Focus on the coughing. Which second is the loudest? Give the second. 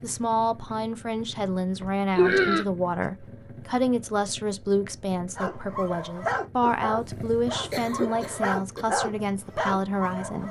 2 s.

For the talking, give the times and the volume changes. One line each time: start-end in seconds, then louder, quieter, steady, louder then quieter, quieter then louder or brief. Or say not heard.
0.0-10.4 steady.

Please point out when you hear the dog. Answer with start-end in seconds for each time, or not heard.
5.3-10.4.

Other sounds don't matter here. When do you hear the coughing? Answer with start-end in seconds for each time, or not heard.
1.8-3.0, 7.7-8.8.